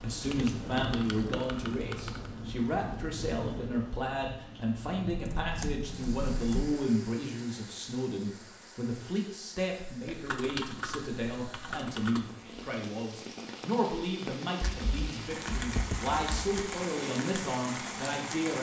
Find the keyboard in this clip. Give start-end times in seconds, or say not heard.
0.2-2.3, 5.1-6.8, 10.1-12.3, 14.6-16.5.